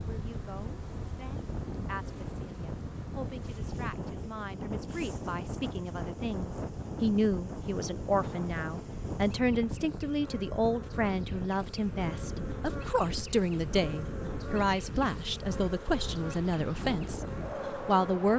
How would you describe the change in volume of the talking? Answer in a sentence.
The volume of the talking goes up.